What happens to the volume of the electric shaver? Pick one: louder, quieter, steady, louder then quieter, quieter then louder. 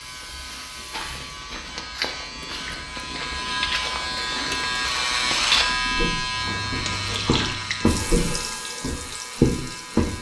louder then quieter.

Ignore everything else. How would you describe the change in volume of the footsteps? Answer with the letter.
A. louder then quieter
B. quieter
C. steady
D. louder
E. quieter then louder
D.